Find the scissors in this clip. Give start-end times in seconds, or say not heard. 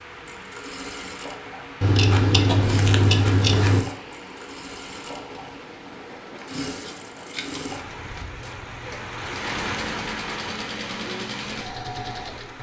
1.8-3.8, 6.4-7.8.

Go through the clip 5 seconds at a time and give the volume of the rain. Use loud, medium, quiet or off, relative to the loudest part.
medium, loud, loud.